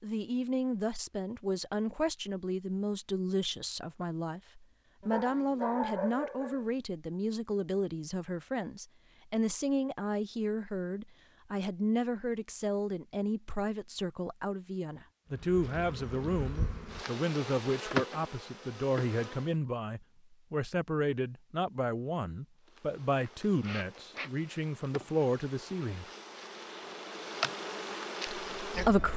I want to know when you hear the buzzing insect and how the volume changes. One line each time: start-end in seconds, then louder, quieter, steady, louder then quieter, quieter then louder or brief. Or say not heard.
15.3-19.6 louder then quieter
22.6-29.1 louder.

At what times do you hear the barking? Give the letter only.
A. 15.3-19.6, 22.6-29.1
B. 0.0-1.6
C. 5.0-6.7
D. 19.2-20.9
C.